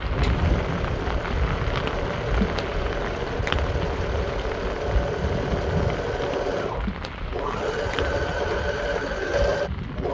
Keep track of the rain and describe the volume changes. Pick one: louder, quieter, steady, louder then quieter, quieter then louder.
quieter.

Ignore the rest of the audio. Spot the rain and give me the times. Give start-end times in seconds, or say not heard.
0.0-10.0.